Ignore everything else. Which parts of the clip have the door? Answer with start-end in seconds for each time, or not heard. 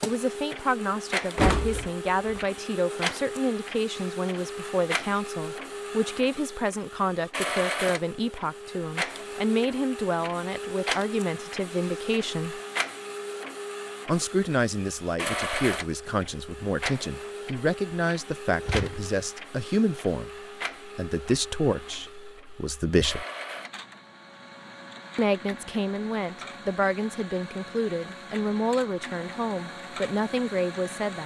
1.4-2.4, 18.6-19.1.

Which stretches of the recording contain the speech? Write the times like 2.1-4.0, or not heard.
0.1-12.6, 14.1-23.2, 25.1-31.2.